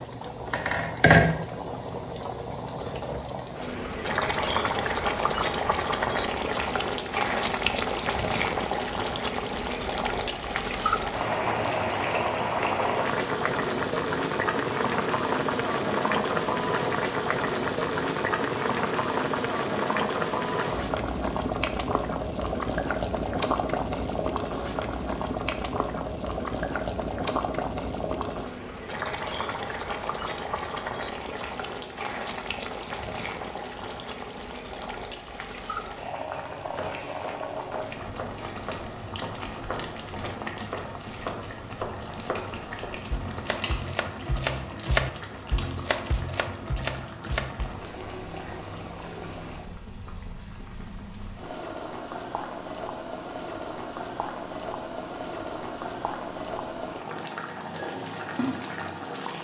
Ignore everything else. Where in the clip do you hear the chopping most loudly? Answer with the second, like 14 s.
45 s.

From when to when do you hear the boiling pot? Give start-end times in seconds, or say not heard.
0.0-59.3.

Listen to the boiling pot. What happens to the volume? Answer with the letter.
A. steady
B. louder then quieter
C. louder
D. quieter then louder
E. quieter
E.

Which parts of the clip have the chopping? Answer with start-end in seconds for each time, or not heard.
36.6-47.9.